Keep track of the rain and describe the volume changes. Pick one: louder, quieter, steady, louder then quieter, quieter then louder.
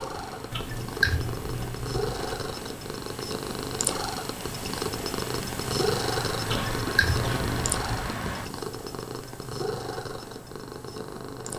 louder.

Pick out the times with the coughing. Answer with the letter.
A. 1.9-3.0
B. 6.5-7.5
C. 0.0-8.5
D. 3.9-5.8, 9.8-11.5
B.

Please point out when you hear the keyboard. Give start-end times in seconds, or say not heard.
0.5-2.4, 6.5-8.2.